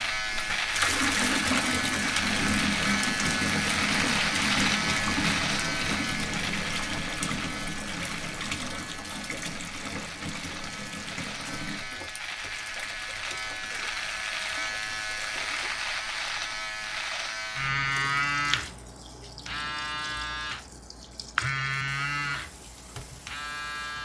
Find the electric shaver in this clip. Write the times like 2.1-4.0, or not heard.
0.0-23.9.